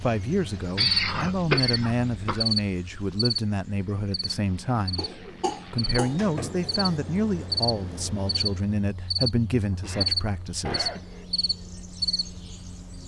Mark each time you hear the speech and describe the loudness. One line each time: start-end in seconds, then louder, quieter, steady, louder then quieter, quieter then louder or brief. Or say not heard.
0.0-10.9 steady.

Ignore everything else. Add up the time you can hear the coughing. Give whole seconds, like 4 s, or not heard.
5 s.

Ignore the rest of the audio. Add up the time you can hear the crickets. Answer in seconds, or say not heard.
13 s.